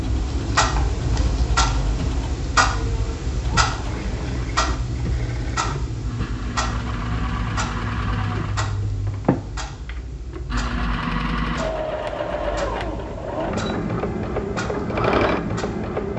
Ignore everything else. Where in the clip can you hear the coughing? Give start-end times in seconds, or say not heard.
not heard.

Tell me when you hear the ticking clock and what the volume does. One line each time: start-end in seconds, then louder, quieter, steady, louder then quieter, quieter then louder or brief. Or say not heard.
0.0-16.1 quieter.